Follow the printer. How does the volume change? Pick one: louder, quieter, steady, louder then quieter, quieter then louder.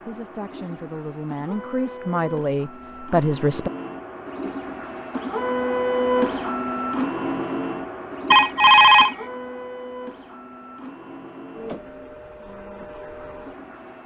louder then quieter.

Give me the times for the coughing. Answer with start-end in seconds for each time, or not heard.
not heard.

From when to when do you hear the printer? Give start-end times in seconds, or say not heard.
0.0-14.0.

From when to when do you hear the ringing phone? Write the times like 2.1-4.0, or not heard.
8.3-9.2.